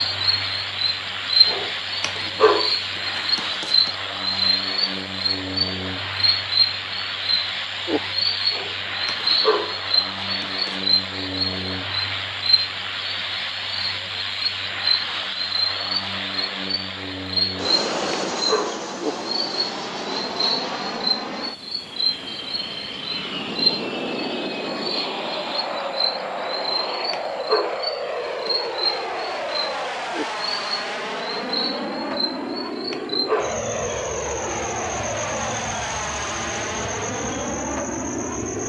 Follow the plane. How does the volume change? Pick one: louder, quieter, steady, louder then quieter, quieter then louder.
steady.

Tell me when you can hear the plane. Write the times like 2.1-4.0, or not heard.
0.0-38.6.